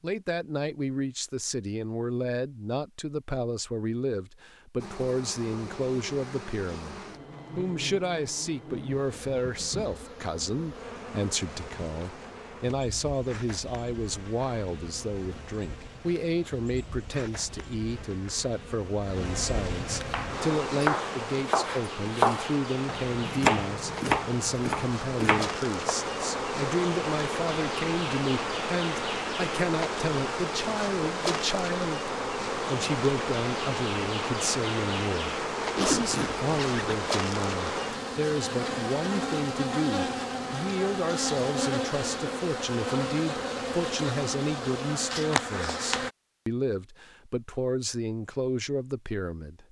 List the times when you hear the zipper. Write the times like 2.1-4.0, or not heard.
35.8-37.0.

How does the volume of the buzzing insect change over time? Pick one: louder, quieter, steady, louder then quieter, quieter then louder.
louder.